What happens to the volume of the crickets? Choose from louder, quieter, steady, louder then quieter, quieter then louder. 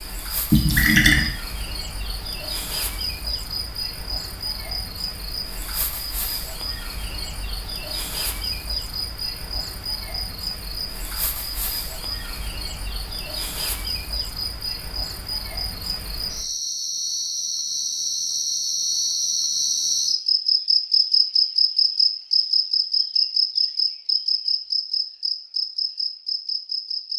louder.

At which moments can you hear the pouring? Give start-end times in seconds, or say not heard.
0.5-1.3.